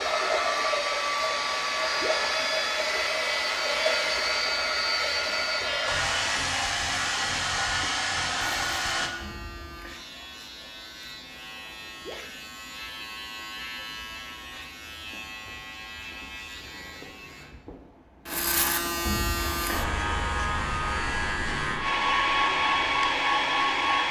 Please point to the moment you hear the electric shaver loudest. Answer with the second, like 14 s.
19 s.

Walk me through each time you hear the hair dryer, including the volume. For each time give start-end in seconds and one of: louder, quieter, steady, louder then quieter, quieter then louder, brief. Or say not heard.
0.0-9.1 steady
19.4-24.0 louder.